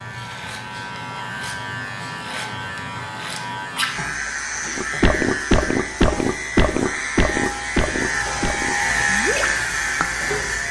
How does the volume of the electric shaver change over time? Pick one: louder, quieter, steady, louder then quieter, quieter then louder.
louder.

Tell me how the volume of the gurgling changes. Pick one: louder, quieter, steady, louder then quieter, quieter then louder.
quieter.